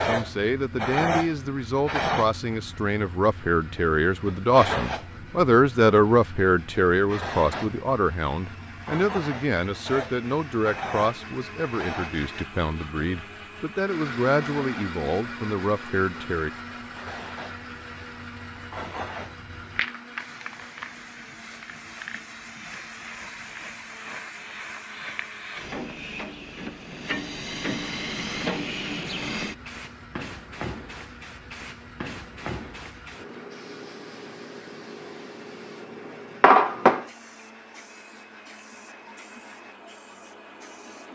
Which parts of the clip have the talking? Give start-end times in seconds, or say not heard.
0.0-16.5.